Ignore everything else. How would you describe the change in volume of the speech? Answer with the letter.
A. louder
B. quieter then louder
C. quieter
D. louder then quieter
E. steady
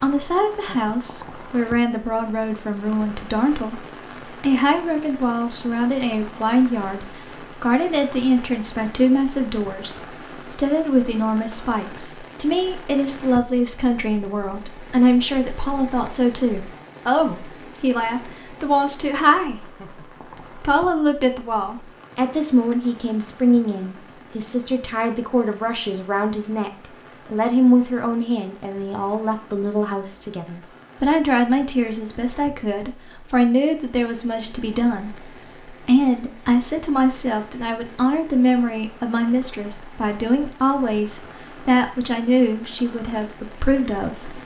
E.